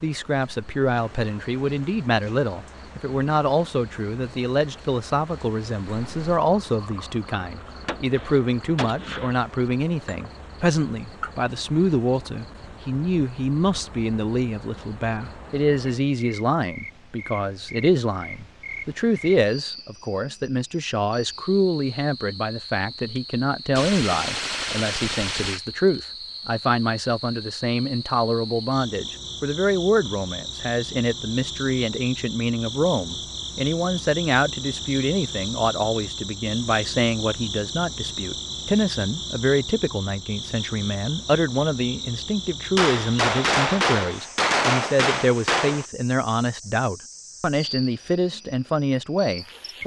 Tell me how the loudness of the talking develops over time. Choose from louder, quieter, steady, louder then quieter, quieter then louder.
steady.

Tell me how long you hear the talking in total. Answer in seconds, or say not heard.
50 s.